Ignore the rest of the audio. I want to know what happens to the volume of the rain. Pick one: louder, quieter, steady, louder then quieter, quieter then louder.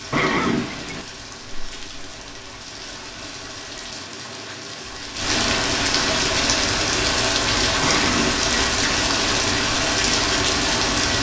louder.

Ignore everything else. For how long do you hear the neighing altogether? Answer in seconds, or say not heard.
2 s.